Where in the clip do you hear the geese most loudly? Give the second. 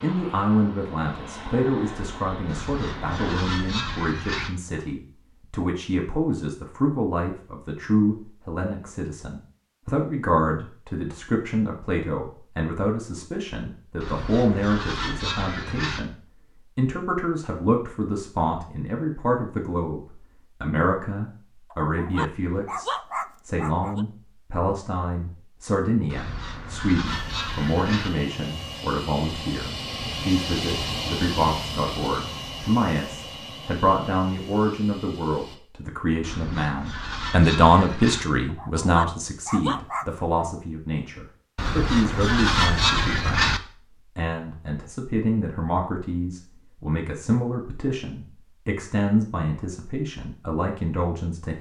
43 s.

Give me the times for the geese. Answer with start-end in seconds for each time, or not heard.
2.5-4.5, 14.0-16.0, 26.1-28.1, 36.2-38.2, 41.5-43.6.